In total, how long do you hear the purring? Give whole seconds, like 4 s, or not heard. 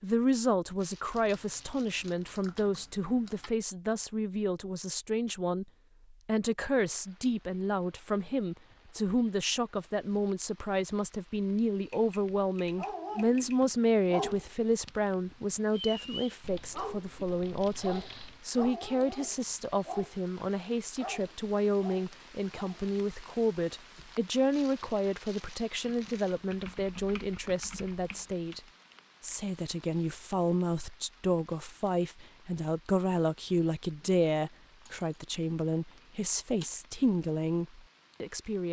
not heard.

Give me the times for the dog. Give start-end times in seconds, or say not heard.
12.8-20.1, 20.9-22.9.